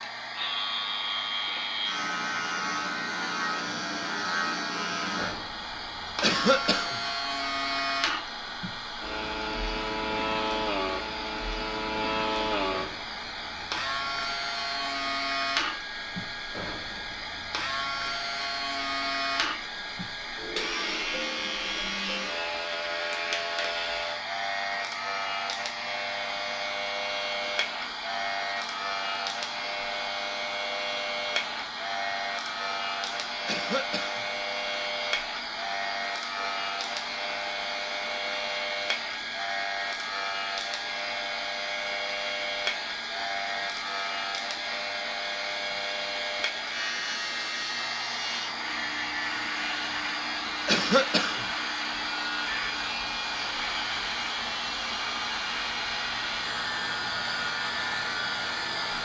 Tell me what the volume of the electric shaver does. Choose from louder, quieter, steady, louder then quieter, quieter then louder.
steady.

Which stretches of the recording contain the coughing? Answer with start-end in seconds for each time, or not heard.
6.2-7.0, 33.5-34.2, 50.6-51.5.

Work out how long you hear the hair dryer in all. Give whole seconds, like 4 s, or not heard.
59 s.